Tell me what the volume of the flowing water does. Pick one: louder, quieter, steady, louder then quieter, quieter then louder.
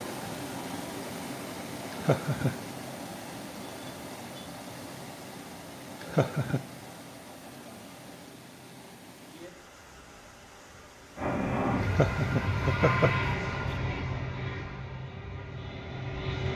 quieter.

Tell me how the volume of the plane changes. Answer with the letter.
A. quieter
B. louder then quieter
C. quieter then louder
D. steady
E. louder
A.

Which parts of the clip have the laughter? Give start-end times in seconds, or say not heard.
1.9-2.5, 6.0-6.6, 11.8-13.8.